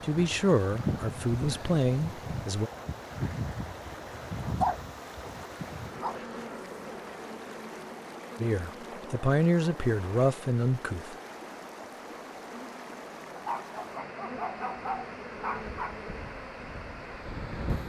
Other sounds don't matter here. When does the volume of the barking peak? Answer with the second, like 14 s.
5 s.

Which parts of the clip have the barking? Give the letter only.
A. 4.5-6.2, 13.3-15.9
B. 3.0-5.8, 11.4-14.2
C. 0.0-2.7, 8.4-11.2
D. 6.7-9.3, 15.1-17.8
A.